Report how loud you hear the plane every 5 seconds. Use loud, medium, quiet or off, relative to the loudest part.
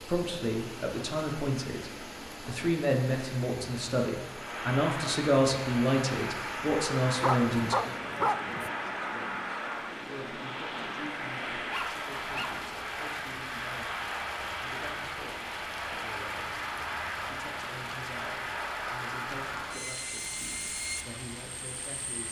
medium, loud, loud, loud, medium.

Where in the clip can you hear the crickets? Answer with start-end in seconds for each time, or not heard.
not heard.